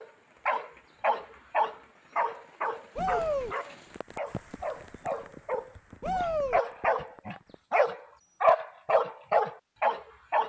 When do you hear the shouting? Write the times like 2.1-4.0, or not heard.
3.0-3.5, 6.0-6.6.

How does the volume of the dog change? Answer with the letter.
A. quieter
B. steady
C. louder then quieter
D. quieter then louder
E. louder
D.